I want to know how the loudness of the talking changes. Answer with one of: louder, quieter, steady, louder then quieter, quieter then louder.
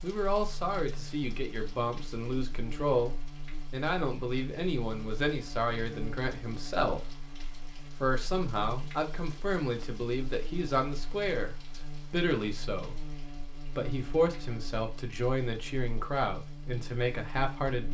steady.